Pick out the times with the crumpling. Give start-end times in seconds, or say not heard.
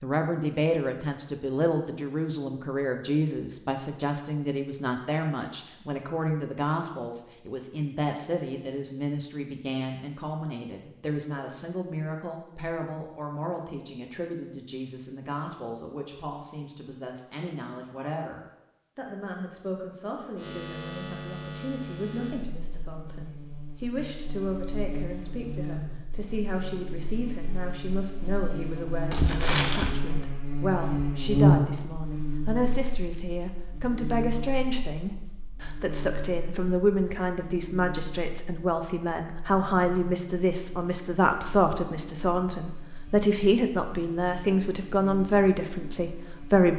29.1-29.9.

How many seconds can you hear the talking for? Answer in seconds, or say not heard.
47 s.